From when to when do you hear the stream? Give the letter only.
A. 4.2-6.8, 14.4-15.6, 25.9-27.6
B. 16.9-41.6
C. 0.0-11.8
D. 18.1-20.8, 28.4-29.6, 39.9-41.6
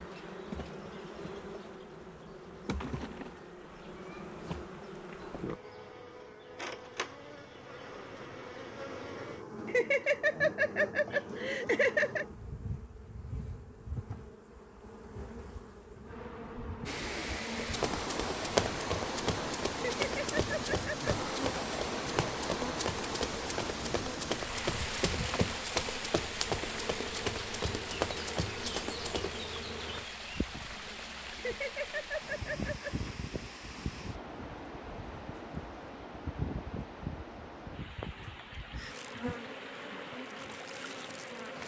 B.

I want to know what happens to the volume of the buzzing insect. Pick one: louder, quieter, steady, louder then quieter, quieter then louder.
steady.